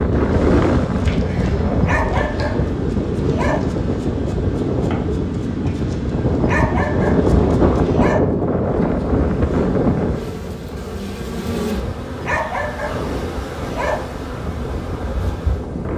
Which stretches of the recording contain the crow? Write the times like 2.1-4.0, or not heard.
not heard.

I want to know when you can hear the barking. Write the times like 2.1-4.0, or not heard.
1.8-3.6, 6.4-8.2, 12.2-14.0.